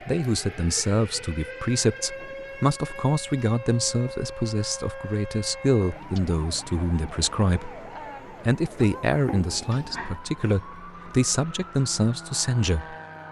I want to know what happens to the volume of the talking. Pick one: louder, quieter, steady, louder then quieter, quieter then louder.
steady.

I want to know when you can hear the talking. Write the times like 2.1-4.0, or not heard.
0.1-7.8, 8.4-12.9.